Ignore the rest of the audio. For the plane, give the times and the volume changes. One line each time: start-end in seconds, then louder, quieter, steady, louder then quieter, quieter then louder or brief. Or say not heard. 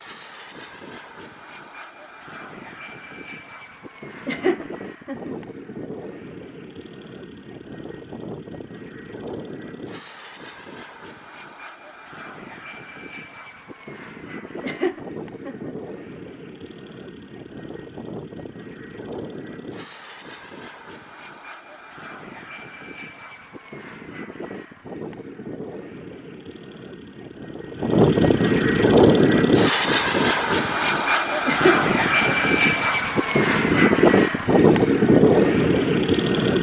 0.0-36.5 louder.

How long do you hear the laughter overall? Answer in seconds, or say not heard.
3 s.